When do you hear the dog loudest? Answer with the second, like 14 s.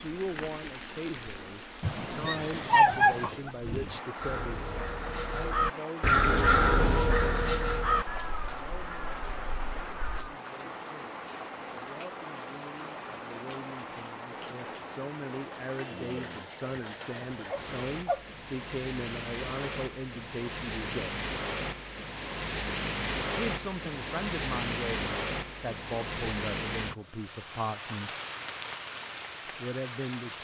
3 s.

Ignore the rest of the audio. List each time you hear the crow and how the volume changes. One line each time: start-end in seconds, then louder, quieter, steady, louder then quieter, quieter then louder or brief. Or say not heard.
4.2-10.3 louder then quieter.